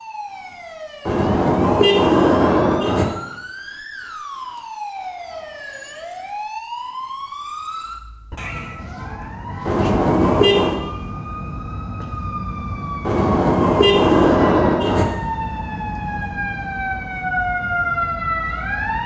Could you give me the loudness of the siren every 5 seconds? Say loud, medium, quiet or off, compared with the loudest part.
medium, medium, medium, loud.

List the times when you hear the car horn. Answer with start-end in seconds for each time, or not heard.
1.1-3.0, 9.7-10.8, 13.1-15.1.